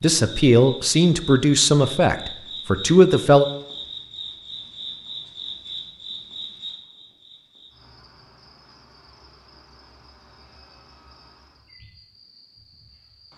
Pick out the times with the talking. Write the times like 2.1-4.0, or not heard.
0.0-3.5.